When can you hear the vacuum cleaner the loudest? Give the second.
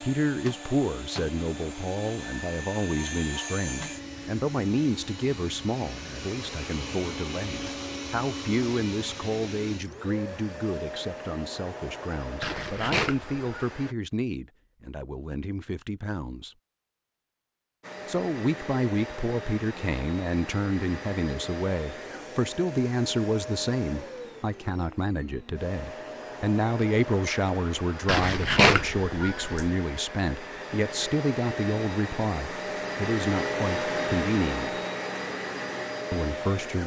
34 s.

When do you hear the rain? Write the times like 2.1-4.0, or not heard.
not heard.